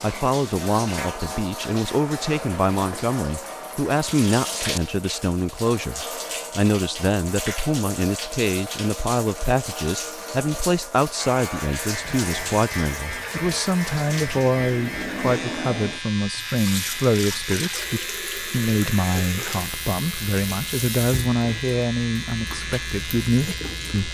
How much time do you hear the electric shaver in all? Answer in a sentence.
The electric shaver can be heard for 13 seconds in total.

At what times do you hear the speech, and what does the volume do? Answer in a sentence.
You can hear the speech from 0.0 to 24.0 s, at a steady volume.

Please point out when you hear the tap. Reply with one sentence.
The tap can be heard from 0.0 to 24.0 s.